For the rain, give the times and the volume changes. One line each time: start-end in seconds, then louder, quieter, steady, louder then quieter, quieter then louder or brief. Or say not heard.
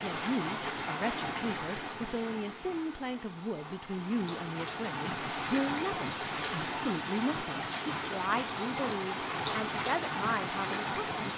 0.0-11.3 quieter then louder.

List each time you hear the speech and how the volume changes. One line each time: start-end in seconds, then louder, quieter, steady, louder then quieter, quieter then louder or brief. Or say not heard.
0.0-11.3 steady.